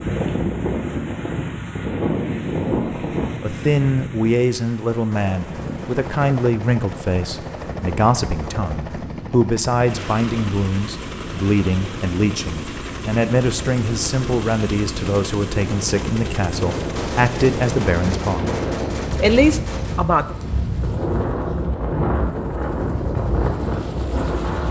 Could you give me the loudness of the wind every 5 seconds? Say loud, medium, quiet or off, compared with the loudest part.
loud, medium, medium, loud, loud.